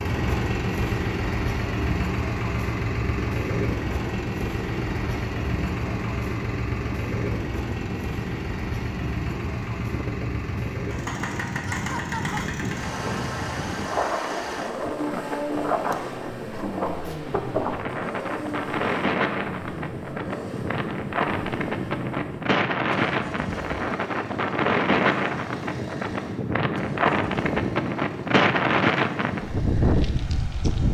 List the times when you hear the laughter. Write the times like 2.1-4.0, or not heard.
11.7-12.4.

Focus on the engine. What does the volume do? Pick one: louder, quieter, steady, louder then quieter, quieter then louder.
quieter.